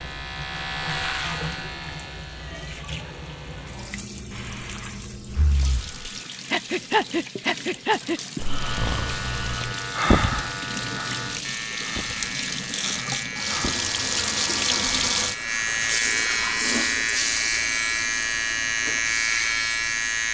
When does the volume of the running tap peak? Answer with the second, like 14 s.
15 s.